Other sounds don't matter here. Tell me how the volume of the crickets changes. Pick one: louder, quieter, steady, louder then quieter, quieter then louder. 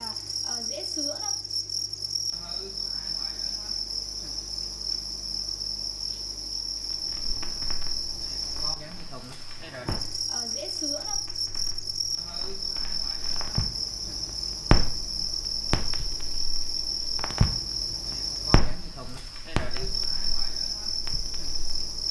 steady.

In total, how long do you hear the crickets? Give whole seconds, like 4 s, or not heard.
22 s.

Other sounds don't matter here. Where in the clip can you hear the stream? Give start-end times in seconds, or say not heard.
not heard.